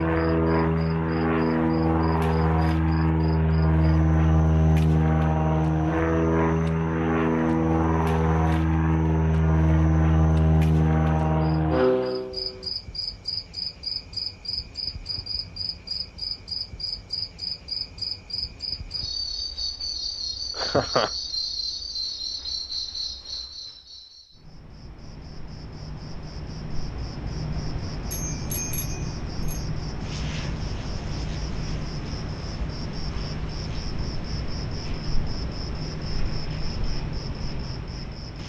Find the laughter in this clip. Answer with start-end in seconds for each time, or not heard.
20.6-21.1.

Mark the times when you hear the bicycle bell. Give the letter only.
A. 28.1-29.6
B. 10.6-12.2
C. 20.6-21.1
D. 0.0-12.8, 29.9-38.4
A.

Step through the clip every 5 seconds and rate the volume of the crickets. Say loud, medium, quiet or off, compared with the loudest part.
quiet, quiet, loud, loud, loud, loud, loud, loud.